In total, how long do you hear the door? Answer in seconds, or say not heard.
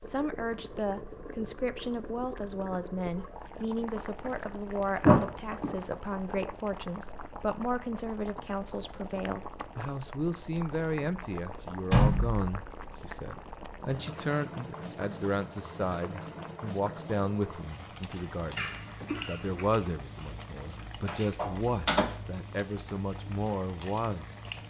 2 s.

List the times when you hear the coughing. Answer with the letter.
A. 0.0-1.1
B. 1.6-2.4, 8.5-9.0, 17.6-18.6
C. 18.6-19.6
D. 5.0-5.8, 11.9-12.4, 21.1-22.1
C.